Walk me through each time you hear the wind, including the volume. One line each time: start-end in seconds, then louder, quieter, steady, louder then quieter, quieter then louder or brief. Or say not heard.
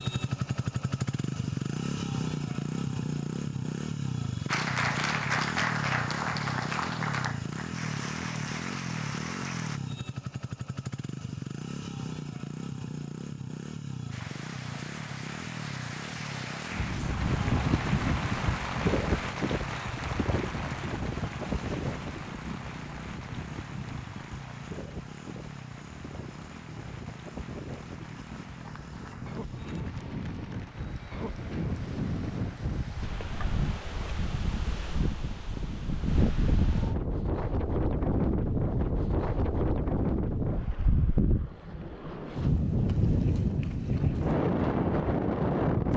16.7-45.9 quieter then louder.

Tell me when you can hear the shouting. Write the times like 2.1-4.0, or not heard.
not heard.